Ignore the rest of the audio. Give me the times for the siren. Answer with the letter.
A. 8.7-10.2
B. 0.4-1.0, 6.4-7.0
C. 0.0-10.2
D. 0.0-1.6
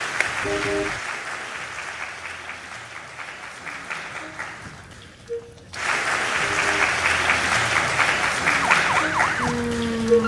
A.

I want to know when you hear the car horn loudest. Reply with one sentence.
The volume of the car horn peaks at 1 second.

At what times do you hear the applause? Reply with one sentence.
The applause can be heard from 0.0 to 10.2 s.